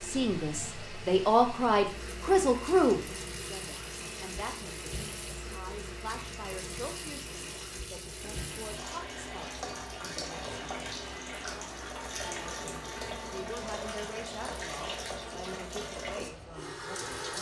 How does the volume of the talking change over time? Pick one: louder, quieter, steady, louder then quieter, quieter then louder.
quieter.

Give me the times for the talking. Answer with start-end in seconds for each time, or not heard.
0.0-10.7, 12.2-17.3.